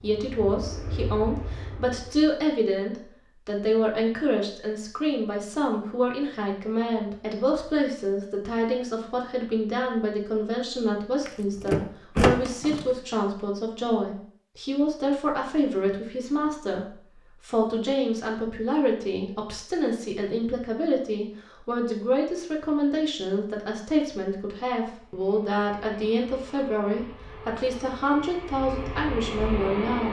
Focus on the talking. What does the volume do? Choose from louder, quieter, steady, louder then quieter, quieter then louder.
steady.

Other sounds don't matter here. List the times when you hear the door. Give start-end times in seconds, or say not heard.
11.2-12.8.